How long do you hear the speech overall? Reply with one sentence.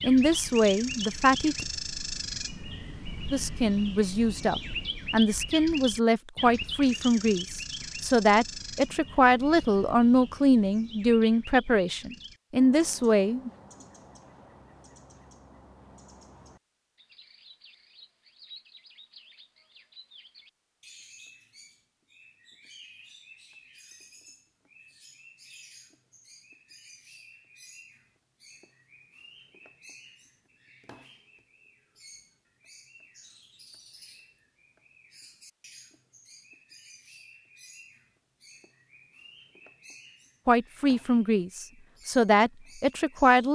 You can hear the speech for 15 seconds altogether.